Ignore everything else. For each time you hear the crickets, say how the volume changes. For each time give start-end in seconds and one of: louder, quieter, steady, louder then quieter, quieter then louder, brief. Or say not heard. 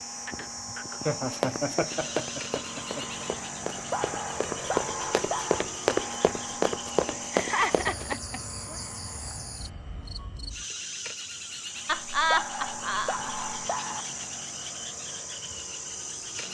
0.0-16.4 steady.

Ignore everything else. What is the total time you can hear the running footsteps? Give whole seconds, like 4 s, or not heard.
7 s.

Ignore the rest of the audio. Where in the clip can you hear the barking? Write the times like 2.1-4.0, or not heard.
3.9-5.7, 12.3-14.1.